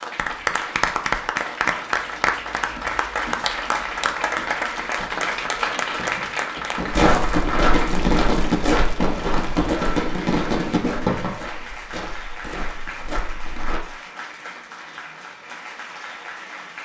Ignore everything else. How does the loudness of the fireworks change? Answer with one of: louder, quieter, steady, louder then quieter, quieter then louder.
louder.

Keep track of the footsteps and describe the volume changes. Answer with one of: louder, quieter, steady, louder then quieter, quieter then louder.
quieter.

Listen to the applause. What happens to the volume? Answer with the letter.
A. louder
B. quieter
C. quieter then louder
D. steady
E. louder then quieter
B.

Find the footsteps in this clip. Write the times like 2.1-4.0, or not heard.
6.9-13.8.